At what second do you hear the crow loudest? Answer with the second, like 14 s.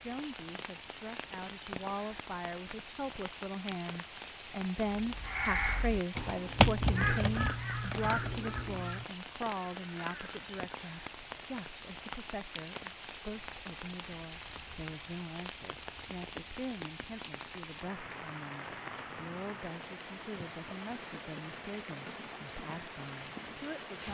7 s.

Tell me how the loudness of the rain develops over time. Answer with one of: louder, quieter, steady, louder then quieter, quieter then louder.
steady.